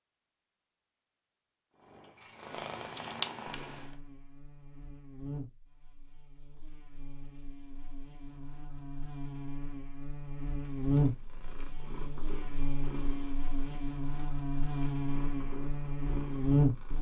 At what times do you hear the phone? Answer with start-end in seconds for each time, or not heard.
not heard.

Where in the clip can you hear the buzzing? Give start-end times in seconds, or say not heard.
3.5-16.9.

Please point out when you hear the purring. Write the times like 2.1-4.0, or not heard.
1.7-4.0, 10.4-16.9.